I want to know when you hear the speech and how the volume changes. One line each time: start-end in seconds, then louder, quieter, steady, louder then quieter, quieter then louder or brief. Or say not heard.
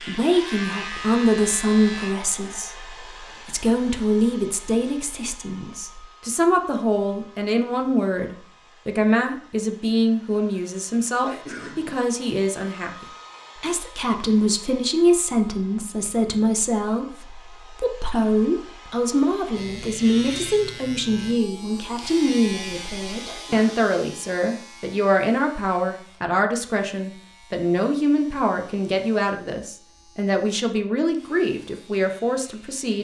0.0-32.9 steady.